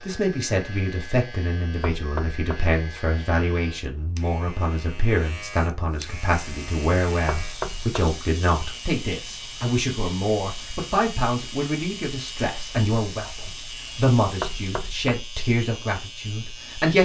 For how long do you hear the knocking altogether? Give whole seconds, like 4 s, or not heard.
3 s.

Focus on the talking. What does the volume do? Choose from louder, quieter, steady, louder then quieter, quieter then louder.
steady.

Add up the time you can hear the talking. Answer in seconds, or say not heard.
17 s.